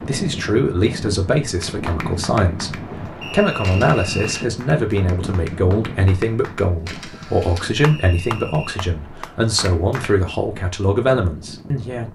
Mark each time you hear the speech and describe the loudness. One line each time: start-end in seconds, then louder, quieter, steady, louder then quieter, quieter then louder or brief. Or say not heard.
0.1-12.1 steady.